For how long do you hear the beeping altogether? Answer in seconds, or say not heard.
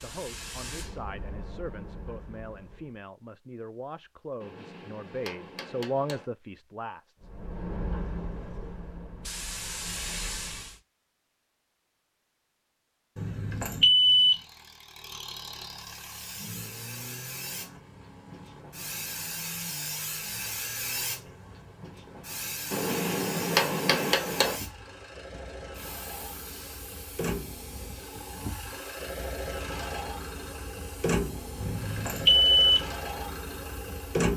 2 s.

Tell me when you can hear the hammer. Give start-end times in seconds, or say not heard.
4.4-6.2, 22.7-24.6.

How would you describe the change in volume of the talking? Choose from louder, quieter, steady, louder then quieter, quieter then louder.
louder.